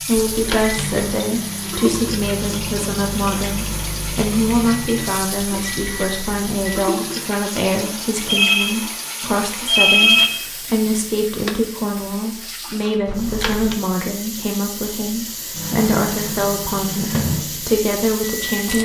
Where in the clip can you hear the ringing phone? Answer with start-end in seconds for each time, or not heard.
0.1-1.1, 8.2-10.3, 13.1-13.8.